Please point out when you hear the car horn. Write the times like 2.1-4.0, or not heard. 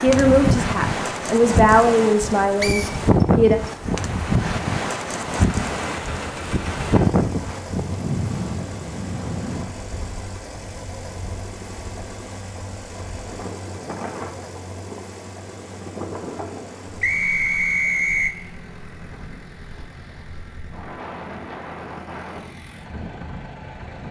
not heard.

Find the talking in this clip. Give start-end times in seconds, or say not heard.
0.0-3.6.